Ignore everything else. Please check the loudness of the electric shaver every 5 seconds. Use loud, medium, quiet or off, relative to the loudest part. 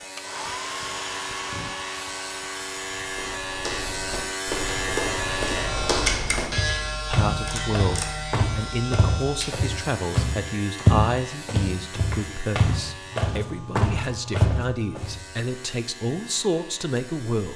loud, loud, medium, quiet.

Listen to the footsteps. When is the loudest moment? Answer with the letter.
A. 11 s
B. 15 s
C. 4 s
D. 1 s
A.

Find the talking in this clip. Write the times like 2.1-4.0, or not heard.
7.1-17.5.